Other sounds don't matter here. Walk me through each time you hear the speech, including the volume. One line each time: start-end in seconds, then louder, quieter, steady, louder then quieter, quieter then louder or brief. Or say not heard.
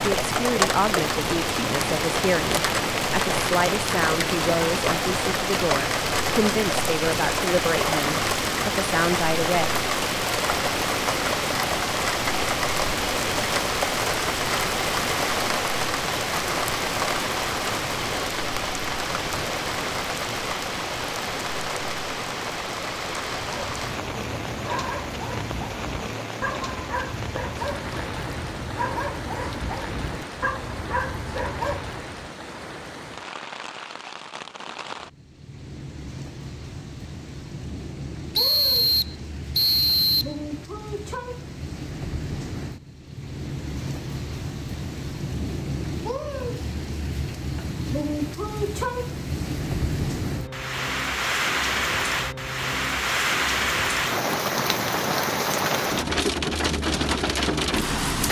0.0-9.7 steady.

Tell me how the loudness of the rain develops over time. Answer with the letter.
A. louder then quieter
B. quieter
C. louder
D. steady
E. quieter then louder
E.